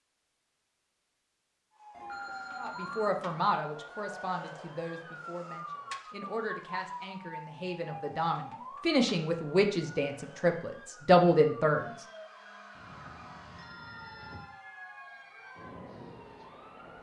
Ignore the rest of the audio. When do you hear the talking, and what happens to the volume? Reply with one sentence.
The talking can be heard from 2.6 to 11.8 s, getting quieter then louder.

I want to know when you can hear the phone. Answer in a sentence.
The phone can be heard from 1.9 to 3.3 s and from 12.8 to 14.6 s.